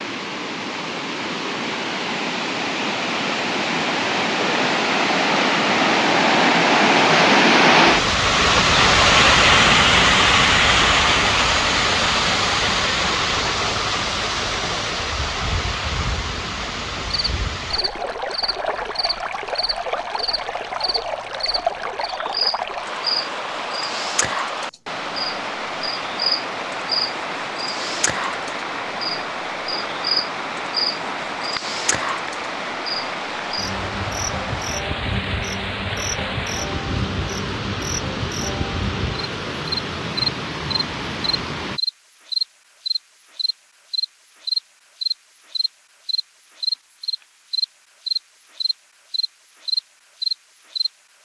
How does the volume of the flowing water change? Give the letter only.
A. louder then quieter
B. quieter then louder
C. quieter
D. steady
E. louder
C.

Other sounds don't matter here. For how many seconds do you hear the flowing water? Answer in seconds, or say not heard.
42 s.